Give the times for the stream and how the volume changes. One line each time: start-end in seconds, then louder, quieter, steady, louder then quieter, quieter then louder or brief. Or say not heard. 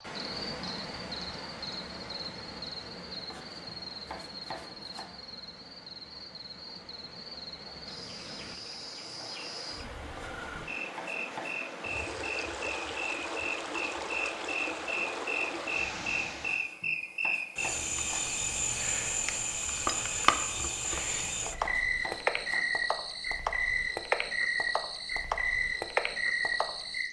0.0-16.7 quieter then louder.